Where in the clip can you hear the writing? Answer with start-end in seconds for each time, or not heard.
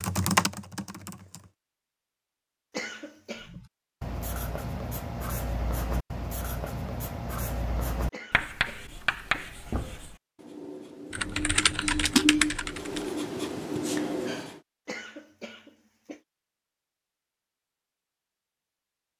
3.5-14.6.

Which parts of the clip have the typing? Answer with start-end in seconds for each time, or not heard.
0.0-1.5, 11.1-13.2.